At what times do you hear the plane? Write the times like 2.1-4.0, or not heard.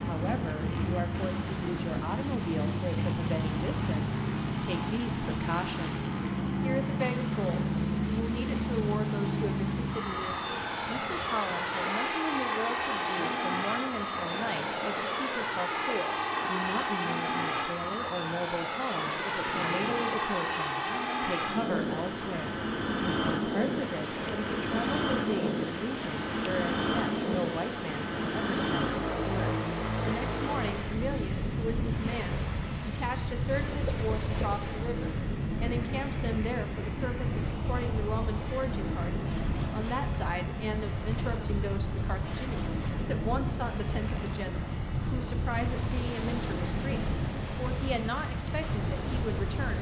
0.0-49.7.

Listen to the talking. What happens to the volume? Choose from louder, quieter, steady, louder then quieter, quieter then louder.
steady.